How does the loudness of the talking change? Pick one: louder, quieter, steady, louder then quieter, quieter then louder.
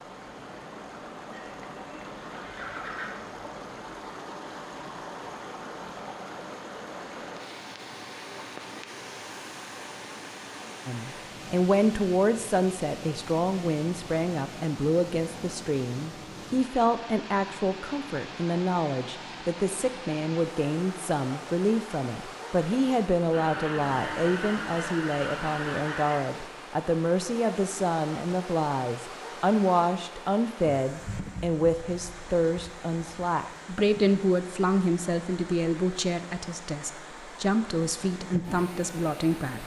steady.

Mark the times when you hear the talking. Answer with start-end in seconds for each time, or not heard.
10.8-39.6.